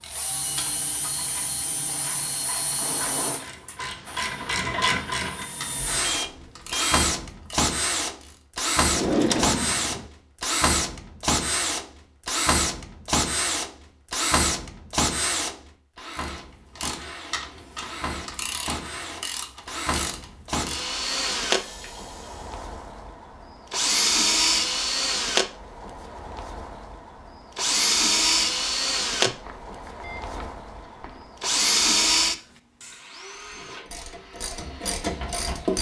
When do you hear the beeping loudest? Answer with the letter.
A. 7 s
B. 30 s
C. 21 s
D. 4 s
A.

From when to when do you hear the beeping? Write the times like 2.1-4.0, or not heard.
5.9-7.0, 29.2-31.2.